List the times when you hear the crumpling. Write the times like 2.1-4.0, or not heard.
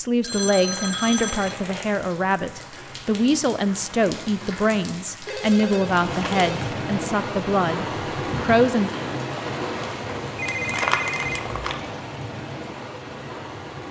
0.6-1.9, 5.4-6.8, 10.4-11.8.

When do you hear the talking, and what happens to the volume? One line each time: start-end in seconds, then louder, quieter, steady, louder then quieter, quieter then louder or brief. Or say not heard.
0.0-8.9 steady.